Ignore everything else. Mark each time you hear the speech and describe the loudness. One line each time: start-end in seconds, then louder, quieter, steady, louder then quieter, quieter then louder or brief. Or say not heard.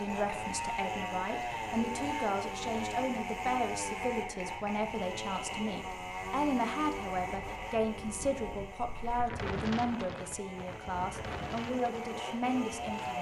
0.0-13.1 steady.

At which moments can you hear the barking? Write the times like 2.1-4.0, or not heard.
not heard.